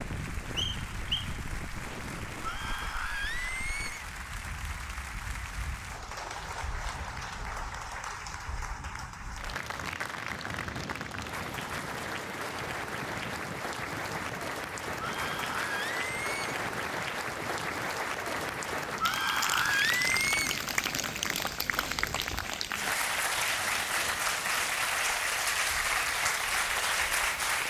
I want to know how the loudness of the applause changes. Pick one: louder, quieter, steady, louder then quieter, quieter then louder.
louder.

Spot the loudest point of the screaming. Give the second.
20 s.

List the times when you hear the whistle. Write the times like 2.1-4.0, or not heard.
0.6-1.4.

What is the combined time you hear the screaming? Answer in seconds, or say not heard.
5 s.